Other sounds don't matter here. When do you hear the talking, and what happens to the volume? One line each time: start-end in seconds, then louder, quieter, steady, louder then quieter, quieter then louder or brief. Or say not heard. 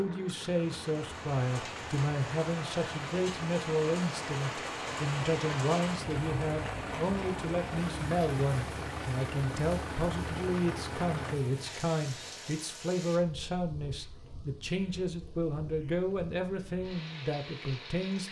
0.0-18.2 steady.